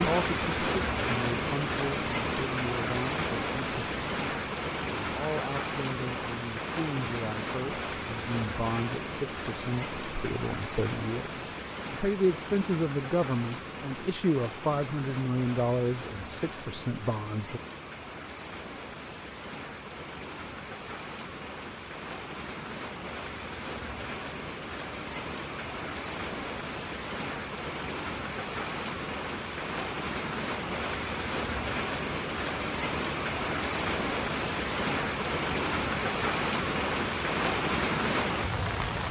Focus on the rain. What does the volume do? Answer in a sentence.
The loudness of the rain goes down, then up.